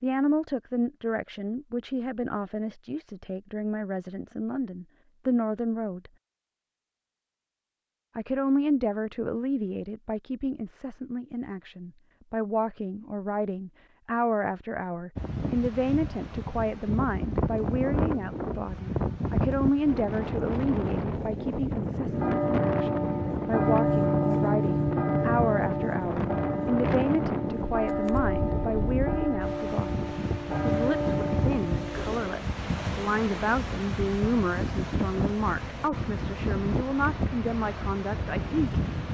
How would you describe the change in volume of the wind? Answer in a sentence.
The loudness of the wind stays about the same.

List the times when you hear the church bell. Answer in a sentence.
You can hear the church bell from 22.1 to 32.4 s.